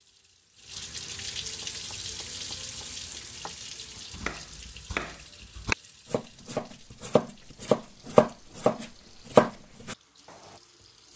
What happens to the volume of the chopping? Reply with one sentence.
The loudness of the chopping goes up.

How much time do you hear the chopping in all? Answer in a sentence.
You can hear the chopping for 8 seconds altogether.